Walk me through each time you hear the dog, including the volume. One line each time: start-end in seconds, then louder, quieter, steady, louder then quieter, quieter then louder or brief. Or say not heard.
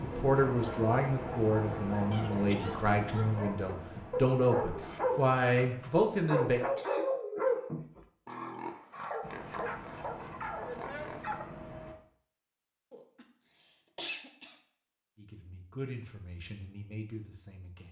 0.5-11.4 louder then quieter.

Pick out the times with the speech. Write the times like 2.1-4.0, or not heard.
0.0-6.6, 15.2-17.8.